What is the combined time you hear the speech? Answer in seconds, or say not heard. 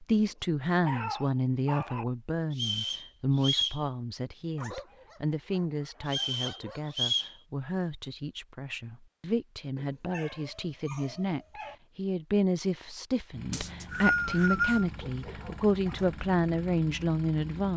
18 s.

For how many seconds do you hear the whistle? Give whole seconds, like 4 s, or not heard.
4 s.